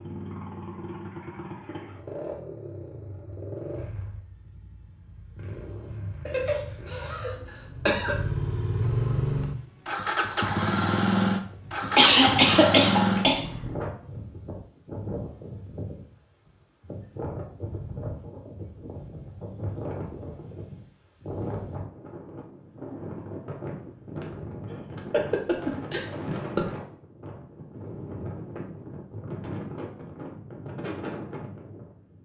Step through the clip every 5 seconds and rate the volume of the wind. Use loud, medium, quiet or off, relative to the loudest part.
off, off, loud, loud, loud, loud, loud.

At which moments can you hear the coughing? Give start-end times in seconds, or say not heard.
6.2-8.2, 11.8-13.4, 24.7-26.6.